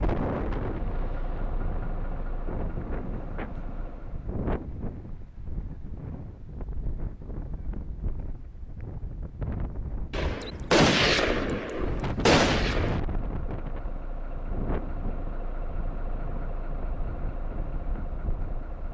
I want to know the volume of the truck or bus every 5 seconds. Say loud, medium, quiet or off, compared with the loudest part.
loud, off, loud, loud.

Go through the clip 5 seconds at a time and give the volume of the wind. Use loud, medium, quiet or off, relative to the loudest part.
loud, medium, loud, medium.